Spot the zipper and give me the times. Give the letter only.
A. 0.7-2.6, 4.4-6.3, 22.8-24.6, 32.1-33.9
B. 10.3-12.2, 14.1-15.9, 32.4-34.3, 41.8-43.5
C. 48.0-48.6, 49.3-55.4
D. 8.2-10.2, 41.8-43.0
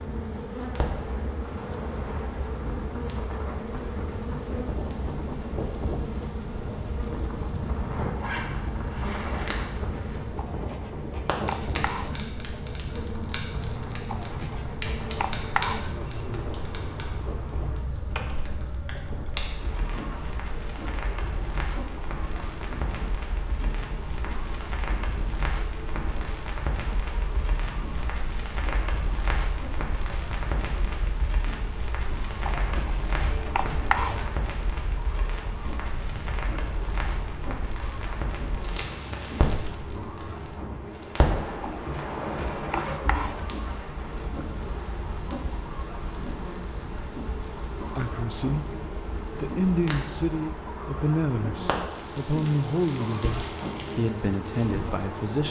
D.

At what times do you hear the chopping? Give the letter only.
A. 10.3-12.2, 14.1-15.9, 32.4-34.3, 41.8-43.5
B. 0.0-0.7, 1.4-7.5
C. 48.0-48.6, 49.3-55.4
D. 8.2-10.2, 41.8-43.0
A.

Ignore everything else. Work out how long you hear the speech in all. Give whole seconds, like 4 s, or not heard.
7 s.